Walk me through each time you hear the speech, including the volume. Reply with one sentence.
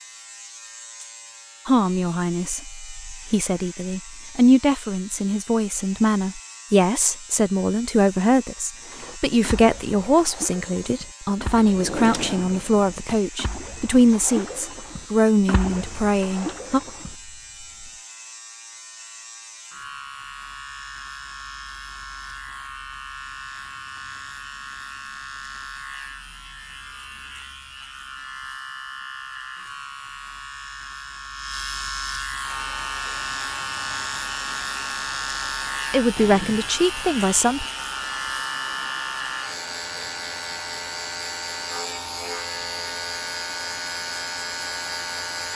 You can hear the speech from 1.6 to 16.8 s, at a steady volume; and briefly from 35.9 to 37.6 s.